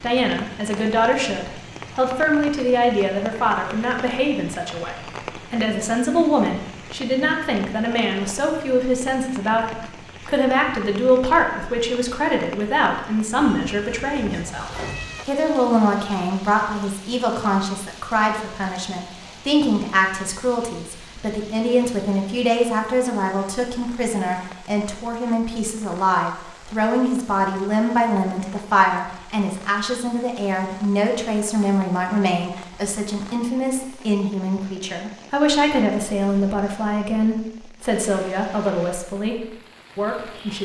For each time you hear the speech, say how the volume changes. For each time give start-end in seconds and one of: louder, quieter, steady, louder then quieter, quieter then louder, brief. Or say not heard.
0.0-40.6 steady.